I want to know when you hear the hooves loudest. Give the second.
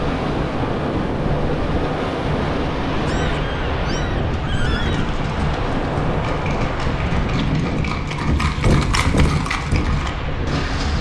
9 s.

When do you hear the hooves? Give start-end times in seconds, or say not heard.
4.3-10.9.